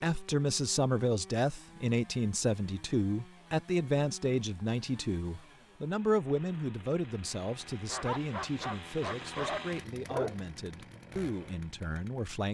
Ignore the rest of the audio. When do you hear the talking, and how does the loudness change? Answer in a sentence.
The talking can be heard from 0.0 to 12.4 s, getting quieter.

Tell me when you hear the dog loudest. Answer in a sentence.
The loudest moment of the dog is at 10 seconds.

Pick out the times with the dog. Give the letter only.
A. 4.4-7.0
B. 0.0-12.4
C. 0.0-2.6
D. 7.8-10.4
D.